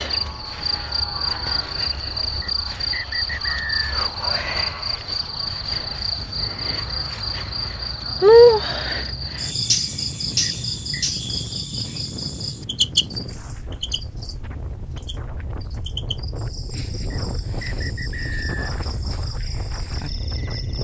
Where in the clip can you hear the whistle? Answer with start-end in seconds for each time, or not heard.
2.4-3.9, 10.4-11.1, 17.1-18.7.